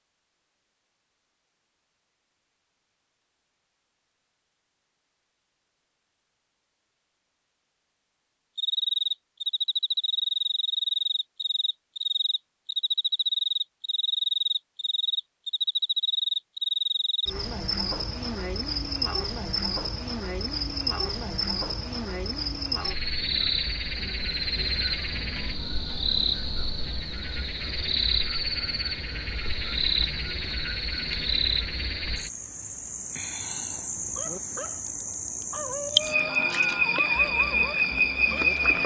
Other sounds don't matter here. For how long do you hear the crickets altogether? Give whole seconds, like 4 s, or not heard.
30 s.